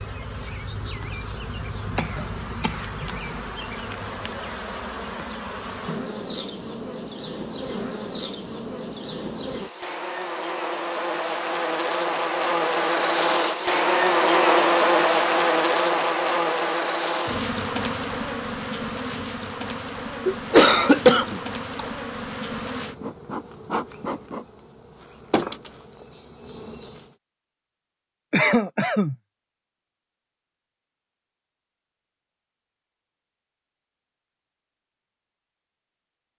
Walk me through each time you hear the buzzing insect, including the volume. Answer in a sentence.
You can hear the buzzing insect from 0.0 to 27.1 s, getting louder then quieter.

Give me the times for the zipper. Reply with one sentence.
You can't hear the zipper here.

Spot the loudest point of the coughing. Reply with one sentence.
The loudest moment of the coughing is at 21 seconds.